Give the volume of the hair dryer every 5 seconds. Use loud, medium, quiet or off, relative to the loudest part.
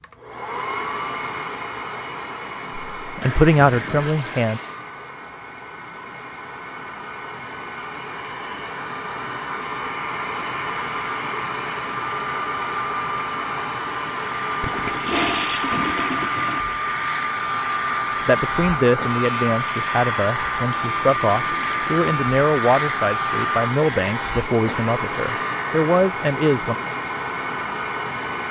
medium, medium, loud, loud, loud, loud.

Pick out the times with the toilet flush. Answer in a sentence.
You can hear the toilet flush from 3.2 to 4.8 s, from 14.6 to 16.6 s and from 20.7 to 22.1 s.